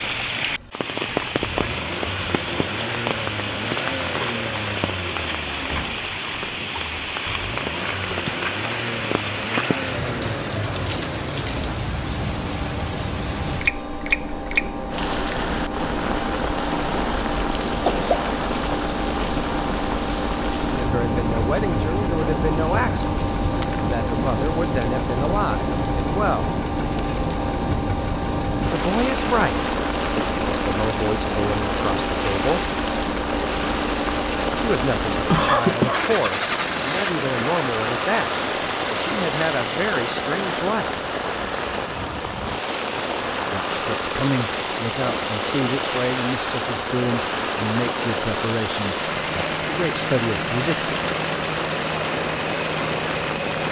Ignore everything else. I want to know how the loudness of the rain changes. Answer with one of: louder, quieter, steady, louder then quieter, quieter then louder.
steady.